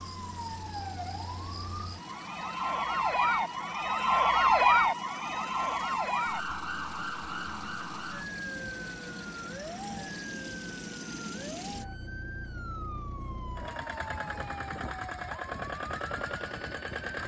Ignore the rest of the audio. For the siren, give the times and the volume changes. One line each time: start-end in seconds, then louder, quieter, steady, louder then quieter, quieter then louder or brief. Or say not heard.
0.0-16.9 louder then quieter.